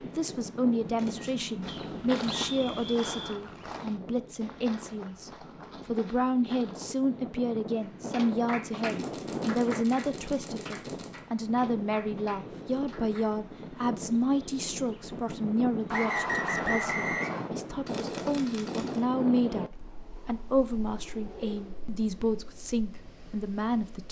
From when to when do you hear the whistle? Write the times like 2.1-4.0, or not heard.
1.6-3.4, 15.9-17.5.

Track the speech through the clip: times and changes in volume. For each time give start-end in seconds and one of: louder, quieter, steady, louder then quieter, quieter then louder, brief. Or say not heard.
0.0-24.0 steady.